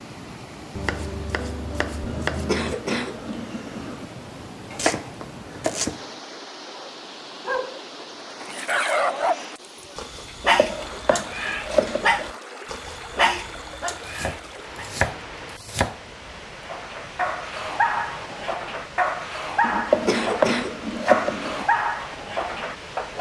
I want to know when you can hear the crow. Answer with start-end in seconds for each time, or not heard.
not heard.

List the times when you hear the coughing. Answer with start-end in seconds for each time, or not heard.
2.0-4.0, 11.3-12.1, 19.6-21.6.